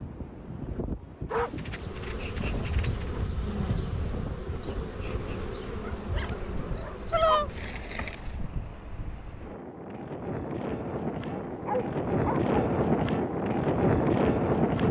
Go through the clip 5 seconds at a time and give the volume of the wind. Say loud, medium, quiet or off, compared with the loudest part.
quiet, quiet, loud.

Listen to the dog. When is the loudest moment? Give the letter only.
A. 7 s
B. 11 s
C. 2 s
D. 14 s
A.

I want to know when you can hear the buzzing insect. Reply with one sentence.
You can hear the buzzing insect from 1.6 to 8.4 s.